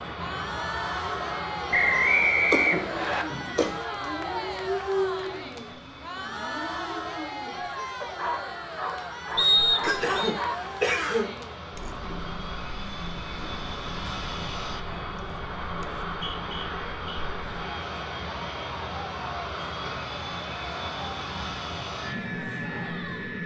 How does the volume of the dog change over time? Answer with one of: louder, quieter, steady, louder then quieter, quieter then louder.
quieter then louder.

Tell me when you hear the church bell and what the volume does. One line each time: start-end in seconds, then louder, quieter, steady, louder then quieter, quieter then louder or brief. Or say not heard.
not heard.